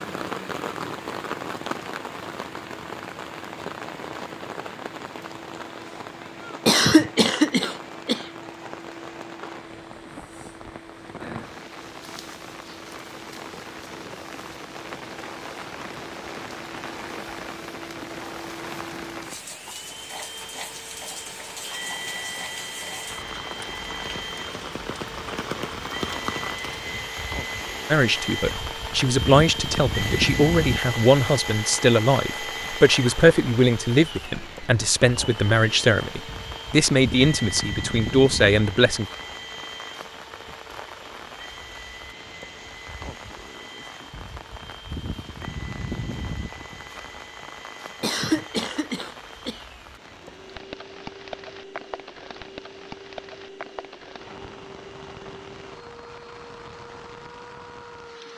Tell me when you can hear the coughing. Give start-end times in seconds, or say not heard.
6.7-8.2, 48.0-49.6.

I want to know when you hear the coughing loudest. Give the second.
7 s.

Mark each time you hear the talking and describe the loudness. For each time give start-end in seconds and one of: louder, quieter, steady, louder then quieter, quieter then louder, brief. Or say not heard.
27.9-39.0 steady.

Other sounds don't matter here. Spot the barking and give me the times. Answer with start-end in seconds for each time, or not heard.
not heard.